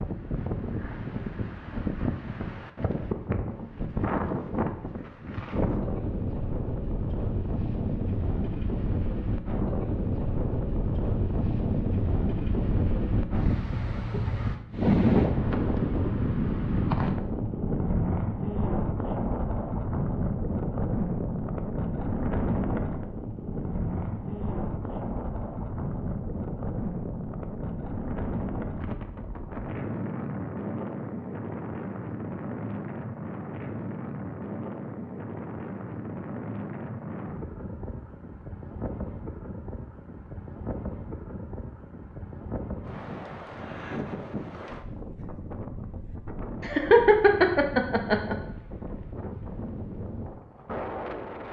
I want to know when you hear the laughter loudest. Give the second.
47 s.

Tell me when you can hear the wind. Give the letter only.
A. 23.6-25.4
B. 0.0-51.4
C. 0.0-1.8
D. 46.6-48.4
B.